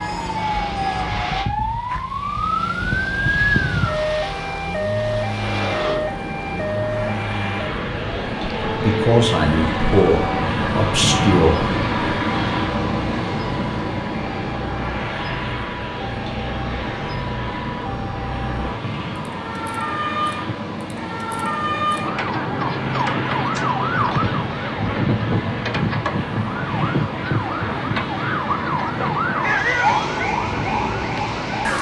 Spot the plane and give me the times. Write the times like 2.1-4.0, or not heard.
0.0-31.7.